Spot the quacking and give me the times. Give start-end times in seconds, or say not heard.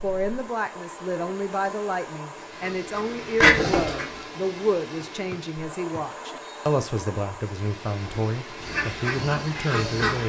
2.5-4.2, 8.6-10.2.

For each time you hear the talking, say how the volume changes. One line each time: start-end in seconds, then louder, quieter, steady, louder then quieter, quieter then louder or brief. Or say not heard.
0.0-10.2 steady.